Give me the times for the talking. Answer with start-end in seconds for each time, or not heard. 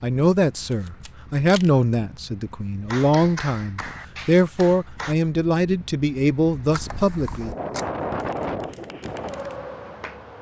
0.0-7.5.